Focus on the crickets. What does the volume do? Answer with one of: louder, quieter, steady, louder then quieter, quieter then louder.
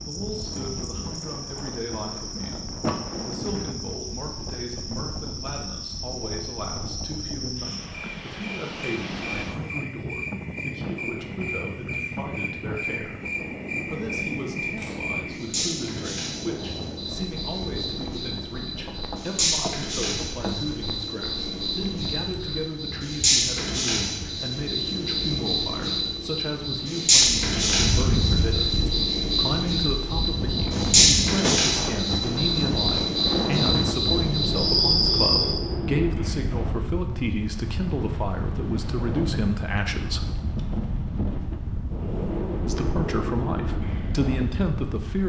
louder.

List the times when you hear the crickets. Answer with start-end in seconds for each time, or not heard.
0.0-35.6.